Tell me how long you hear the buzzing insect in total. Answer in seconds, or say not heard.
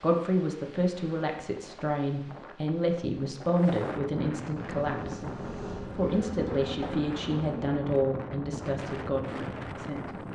3 s.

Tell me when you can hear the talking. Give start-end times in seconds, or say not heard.
0.0-5.2, 6.0-10.1.